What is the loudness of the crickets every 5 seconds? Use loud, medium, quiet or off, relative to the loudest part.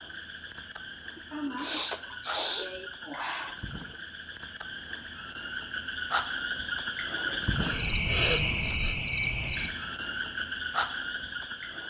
medium, loud, loud.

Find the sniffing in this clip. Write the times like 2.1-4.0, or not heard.
1.1-3.6, 7.6-8.9.